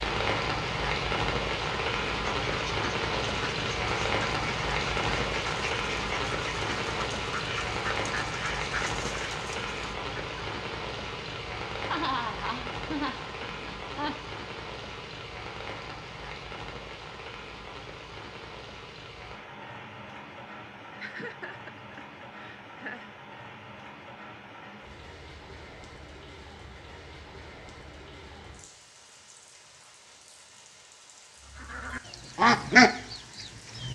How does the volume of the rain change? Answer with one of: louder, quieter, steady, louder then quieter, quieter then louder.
quieter.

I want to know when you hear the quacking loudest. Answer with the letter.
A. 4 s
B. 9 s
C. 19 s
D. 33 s
D.